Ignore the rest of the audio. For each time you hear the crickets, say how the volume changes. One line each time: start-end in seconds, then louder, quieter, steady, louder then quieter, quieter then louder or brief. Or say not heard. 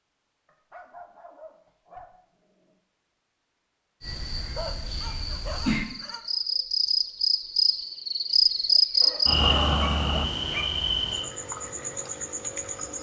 4.0-12.9 louder then quieter.